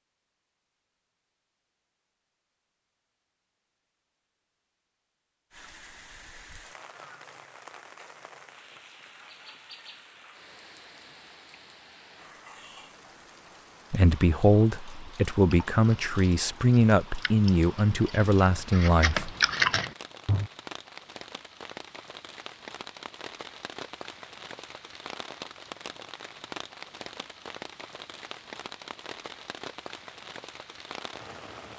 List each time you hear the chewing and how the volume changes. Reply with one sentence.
The chewing can be heard from 14.8 to 20.4 s, getting quieter then louder.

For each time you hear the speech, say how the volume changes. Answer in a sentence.
The speech can be heard from 13.9 to 19.3 s, at a steady volume.